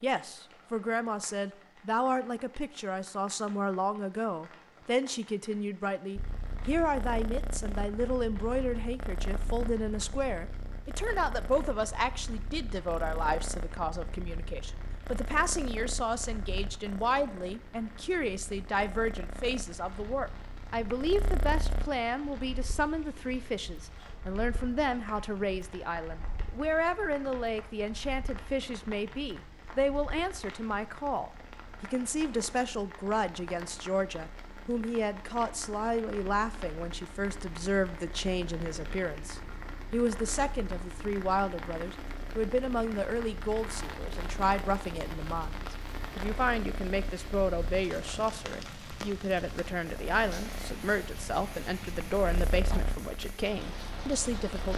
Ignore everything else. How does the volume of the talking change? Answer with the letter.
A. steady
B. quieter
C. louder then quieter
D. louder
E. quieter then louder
A.